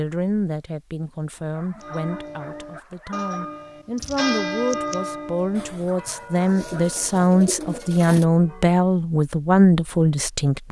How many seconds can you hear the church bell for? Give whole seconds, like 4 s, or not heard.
7 s.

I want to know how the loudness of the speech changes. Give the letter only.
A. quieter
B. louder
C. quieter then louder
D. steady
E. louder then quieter
B.